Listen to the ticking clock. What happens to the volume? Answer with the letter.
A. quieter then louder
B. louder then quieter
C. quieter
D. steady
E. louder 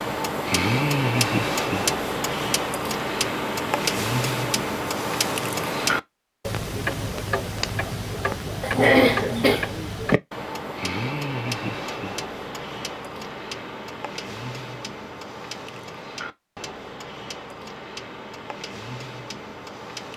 C.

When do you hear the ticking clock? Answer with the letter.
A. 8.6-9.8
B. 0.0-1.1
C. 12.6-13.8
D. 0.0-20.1
D.